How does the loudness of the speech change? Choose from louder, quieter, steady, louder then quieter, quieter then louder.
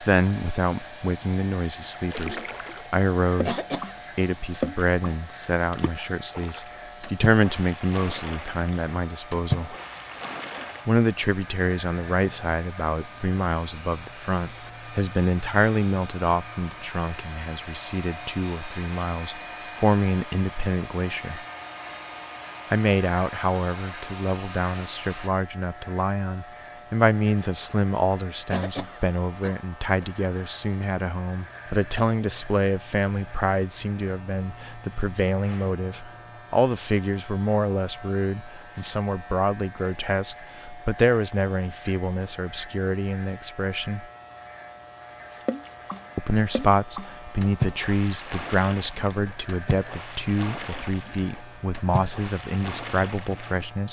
steady.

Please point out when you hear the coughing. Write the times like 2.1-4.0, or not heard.
3.5-4.0, 28.5-30.1.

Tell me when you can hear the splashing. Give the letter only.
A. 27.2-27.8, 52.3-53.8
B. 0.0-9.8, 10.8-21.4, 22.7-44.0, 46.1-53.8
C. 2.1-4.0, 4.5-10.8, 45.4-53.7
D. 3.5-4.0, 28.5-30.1
C.